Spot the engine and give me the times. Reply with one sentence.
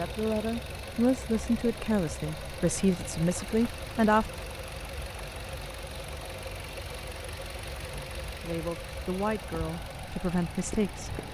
The engine can be heard from 0.0 to 11.2 s.